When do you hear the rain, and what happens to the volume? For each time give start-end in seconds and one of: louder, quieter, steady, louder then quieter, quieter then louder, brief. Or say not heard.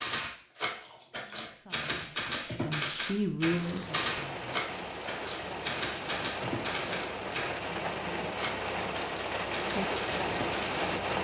3.5-11.1 louder.